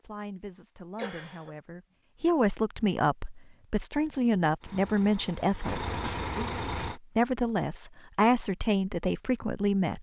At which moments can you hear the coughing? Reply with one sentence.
You can hear the coughing from 0.9 to 1.6 s and from 6.0 to 6.6 s.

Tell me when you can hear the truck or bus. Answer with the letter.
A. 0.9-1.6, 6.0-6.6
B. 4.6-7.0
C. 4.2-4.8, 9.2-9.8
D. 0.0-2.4
B.